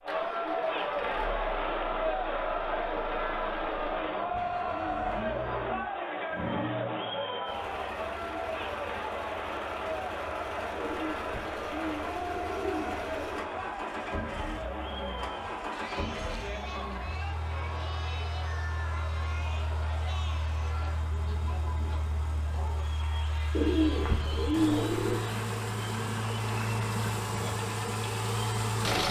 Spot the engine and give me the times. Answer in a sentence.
The engine can be heard from 0.0 to 29.0 s.